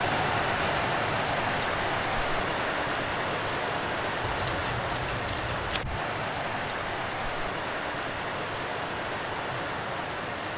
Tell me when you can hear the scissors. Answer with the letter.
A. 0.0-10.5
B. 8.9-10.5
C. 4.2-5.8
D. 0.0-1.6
C.